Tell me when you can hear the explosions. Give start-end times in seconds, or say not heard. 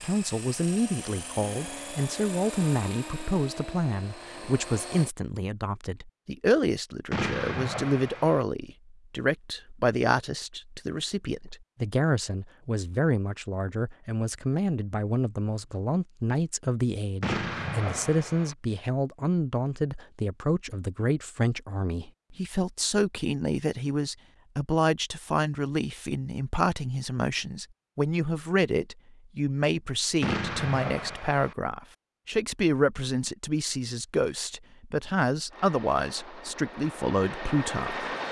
7.1-8.4, 17.2-18.6, 30.2-31.6.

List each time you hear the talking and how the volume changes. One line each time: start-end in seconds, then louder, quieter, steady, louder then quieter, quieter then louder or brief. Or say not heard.
0.0-38.1 steady.